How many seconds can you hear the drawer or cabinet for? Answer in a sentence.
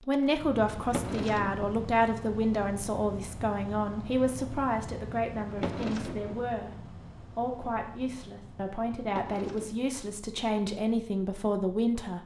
You can hear the drawer or cabinet for 3 seconds altogether.